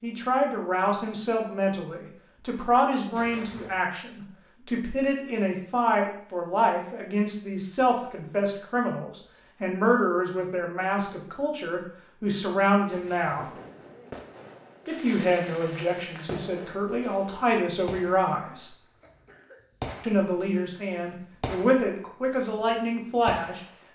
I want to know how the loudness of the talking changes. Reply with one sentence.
The volume of the talking stays about the same.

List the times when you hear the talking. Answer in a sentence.
The talking can be heard from 0.0 to 13.5 s, from 14.8 to 18.8 s and from 20.0 to 23.6 s.